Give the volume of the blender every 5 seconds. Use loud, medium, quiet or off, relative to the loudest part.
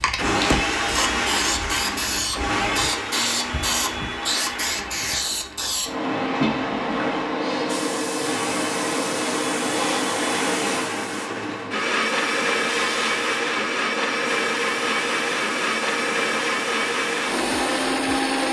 loud, medium, loud, loud.